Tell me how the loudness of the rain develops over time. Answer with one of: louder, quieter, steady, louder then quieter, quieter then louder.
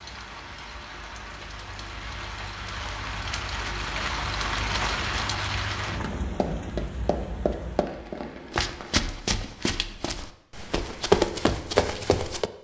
louder then quieter.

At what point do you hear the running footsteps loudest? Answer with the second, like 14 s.
11 s.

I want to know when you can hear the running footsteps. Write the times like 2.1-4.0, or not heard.
6.0-12.5.